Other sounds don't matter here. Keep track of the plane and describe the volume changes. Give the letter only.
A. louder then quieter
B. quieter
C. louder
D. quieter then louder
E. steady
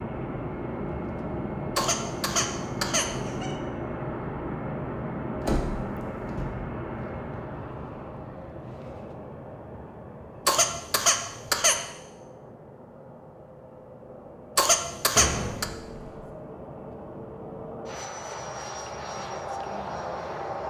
D.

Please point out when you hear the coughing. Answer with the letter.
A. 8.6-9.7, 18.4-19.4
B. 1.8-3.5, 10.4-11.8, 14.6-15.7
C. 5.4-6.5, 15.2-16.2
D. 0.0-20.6
B.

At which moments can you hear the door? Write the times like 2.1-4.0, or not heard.
5.4-6.5, 15.2-16.2.